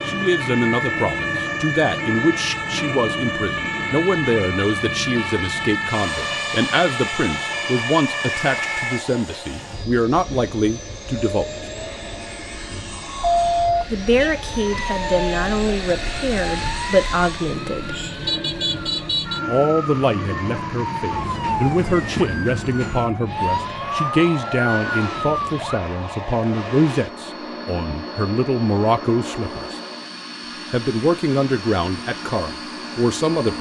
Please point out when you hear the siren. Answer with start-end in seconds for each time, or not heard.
0.0-9.1, 12.8-25.8.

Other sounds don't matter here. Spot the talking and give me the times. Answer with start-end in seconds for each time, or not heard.
0.1-11.5, 13.9-18.0, 19.4-29.8, 30.7-33.5.